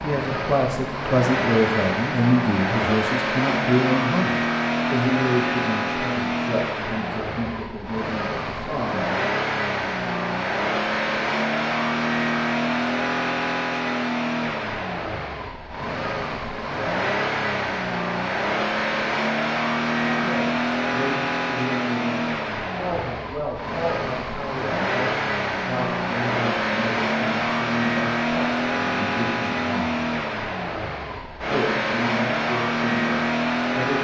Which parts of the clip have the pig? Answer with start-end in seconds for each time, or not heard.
not heard.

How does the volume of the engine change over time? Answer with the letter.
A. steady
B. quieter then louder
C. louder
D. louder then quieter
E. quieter
A.